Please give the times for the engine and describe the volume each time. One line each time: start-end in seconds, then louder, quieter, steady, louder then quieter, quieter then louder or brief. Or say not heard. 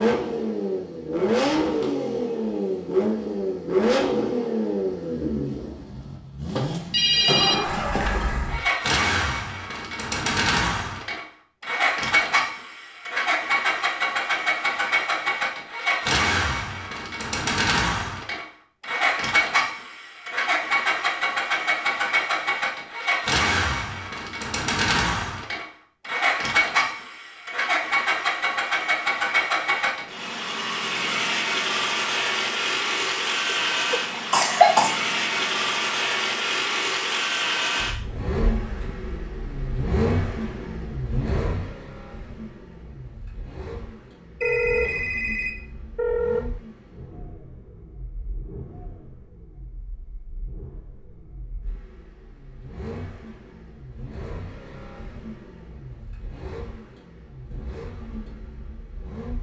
0.0-59.3 quieter.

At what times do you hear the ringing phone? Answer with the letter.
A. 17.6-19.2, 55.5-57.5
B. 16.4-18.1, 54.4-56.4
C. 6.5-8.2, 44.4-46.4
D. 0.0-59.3
C.